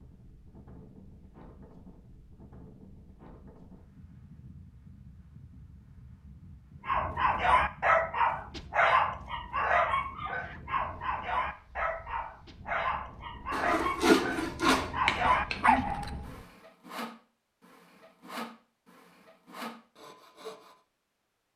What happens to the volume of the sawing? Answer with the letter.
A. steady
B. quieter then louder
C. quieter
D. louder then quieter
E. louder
C.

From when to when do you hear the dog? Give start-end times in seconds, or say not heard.
6.8-16.1.